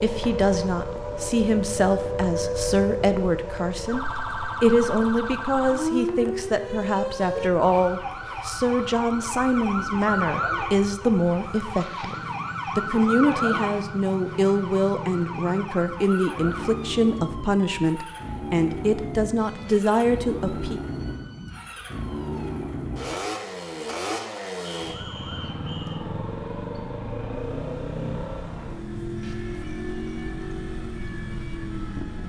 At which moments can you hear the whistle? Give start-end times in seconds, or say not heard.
24.8-26.1.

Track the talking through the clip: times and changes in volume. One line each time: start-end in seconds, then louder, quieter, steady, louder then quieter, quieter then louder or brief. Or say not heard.
0.0-12.2 steady
12.8-20.8 steady.